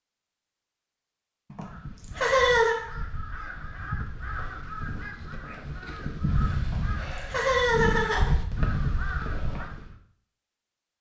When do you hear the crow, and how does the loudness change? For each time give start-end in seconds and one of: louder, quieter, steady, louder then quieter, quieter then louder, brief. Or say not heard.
1.6-9.9 louder.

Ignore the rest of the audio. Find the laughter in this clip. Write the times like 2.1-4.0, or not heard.
1.5-2.8, 6.6-8.3.